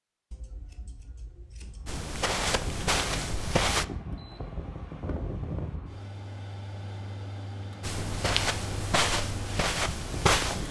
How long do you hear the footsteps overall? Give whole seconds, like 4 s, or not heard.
5 s.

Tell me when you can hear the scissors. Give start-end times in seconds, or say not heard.
0.3-2.0.